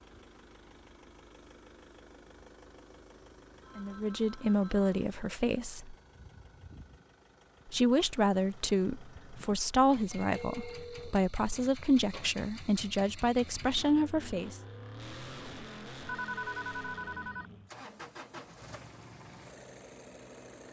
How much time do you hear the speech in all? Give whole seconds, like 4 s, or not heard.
9 s.